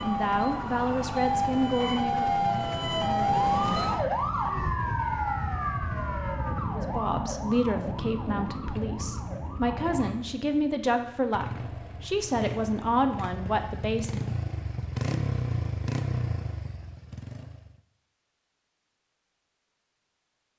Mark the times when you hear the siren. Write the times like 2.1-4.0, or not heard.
0.0-10.2.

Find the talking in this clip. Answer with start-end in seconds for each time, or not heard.
0.0-2.4, 6.7-14.3.